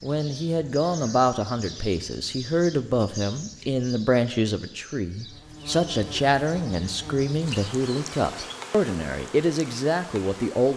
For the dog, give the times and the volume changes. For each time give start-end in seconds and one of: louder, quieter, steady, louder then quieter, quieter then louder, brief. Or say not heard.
not heard.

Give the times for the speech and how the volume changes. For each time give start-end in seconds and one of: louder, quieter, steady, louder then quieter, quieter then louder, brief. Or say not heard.
0.0-10.7 steady.